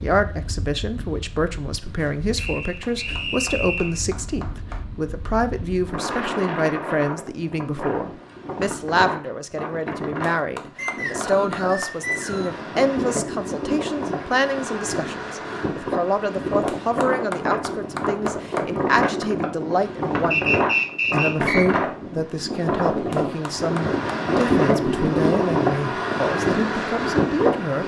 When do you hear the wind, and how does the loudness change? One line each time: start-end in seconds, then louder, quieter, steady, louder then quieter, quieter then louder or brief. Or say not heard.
0.0-27.8 louder.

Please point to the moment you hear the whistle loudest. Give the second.
21 s.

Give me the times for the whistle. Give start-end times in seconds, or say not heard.
2.4-4.0, 10.8-12.6, 20.3-21.6.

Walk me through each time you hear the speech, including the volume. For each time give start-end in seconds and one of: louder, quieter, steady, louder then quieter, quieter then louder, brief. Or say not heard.
0.0-27.8 steady.